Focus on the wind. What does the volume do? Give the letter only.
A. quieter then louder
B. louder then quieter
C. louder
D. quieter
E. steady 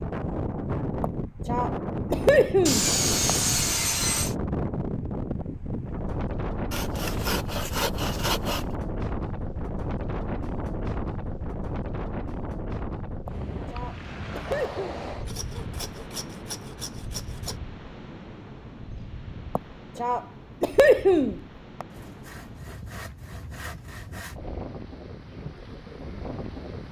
D.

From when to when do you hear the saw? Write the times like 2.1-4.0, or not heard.
2.6-4.3, 6.7-8.7, 15.2-17.6, 21.9-24.4.